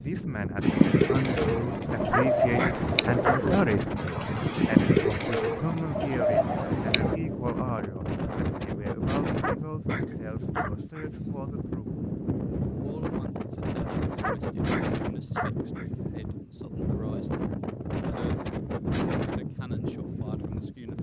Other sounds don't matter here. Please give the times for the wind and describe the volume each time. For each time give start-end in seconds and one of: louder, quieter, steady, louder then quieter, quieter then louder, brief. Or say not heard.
0.0-20.9 steady.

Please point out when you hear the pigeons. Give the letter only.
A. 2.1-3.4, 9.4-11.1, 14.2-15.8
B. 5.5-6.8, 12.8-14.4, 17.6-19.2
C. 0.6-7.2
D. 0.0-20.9
C.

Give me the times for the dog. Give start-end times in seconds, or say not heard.
2.1-3.4, 9.4-11.1, 14.2-15.8.